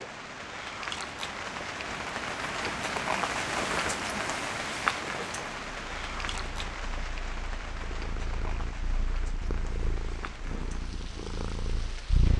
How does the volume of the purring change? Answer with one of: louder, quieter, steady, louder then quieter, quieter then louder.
louder.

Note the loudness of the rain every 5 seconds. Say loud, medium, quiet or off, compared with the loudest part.
loud, medium, quiet.